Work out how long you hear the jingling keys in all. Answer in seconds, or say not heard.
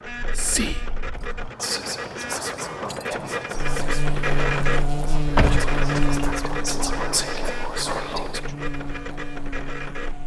3 s.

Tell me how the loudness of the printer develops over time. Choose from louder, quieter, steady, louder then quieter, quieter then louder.
louder then quieter.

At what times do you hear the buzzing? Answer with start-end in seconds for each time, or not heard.
3.5-10.2.